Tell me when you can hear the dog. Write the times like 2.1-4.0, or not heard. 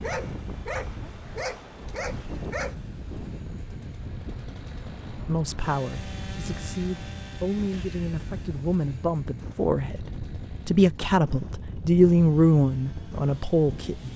0.0-2.8.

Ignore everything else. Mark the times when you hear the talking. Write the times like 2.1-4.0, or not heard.
5.2-14.1.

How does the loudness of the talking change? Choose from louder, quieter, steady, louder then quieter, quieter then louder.
louder.